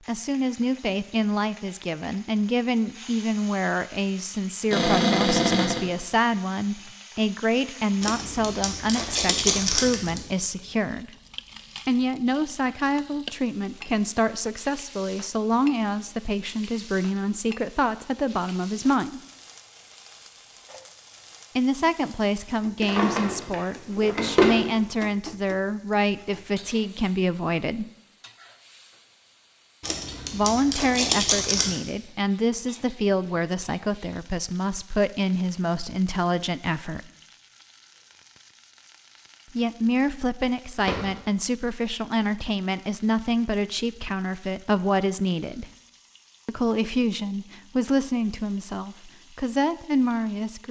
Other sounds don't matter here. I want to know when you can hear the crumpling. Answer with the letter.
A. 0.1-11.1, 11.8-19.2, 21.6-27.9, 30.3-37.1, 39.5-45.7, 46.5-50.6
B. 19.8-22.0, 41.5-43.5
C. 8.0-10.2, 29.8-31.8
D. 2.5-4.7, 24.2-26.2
C.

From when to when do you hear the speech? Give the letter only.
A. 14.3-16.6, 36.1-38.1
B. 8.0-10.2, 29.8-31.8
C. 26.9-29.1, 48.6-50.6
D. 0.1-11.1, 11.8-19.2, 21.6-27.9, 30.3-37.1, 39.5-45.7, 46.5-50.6
D.